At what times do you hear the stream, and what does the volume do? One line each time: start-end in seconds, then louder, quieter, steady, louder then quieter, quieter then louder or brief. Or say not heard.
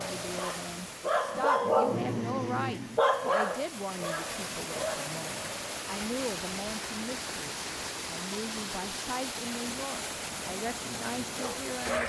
0.0-12.0 louder.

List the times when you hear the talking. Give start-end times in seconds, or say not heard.
0.0-12.0.